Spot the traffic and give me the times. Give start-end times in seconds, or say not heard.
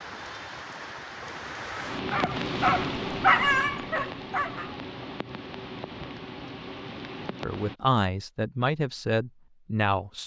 not heard.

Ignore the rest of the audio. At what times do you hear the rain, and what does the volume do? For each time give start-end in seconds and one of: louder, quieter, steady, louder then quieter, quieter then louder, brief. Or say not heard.
0.0-7.8 louder then quieter.